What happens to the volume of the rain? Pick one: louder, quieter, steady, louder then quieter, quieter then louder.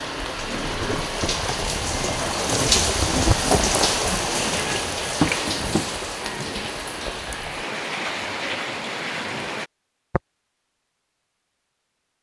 louder then quieter.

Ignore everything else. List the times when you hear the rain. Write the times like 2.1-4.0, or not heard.
0.0-9.7.